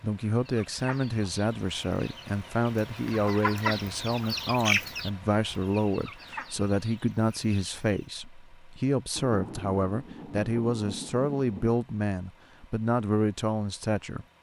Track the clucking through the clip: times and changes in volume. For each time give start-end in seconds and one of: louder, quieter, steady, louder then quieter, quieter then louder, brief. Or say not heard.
0.5-8.1 louder then quieter.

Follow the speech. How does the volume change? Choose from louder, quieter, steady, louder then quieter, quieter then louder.
steady.